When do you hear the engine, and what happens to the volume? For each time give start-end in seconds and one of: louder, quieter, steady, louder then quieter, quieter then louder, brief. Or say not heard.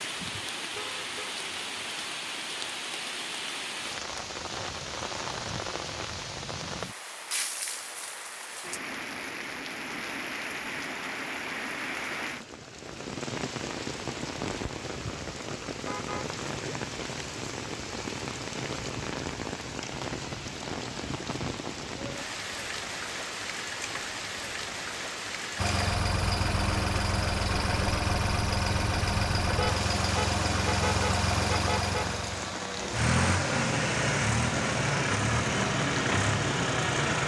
25.6-37.2 steady.